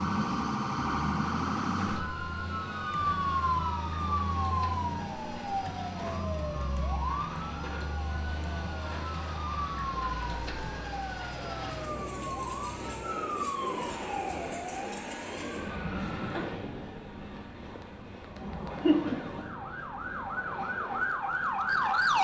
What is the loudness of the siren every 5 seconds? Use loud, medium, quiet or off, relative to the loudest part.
loud, medium, medium, medium, loud.